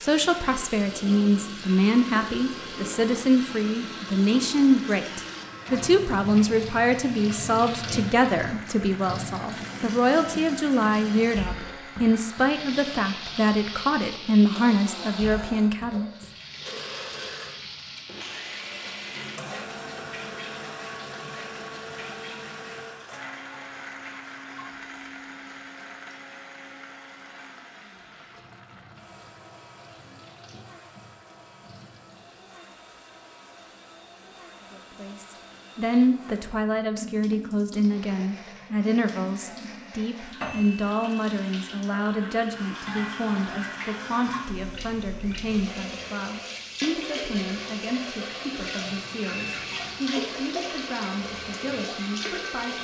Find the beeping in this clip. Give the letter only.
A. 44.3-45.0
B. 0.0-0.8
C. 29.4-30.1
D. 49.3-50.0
D.